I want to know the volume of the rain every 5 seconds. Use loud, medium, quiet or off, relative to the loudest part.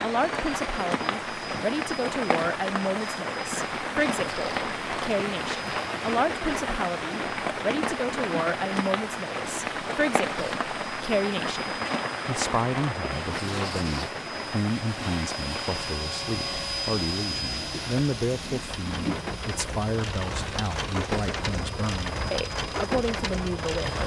loud, loud, loud, medium, loud.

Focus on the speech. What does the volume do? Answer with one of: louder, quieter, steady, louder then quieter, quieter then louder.
steady.